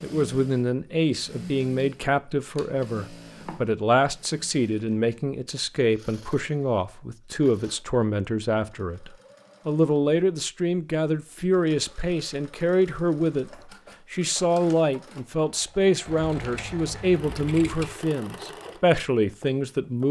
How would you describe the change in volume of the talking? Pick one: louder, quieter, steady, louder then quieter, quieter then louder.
steady.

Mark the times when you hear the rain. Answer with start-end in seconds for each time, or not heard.
not heard.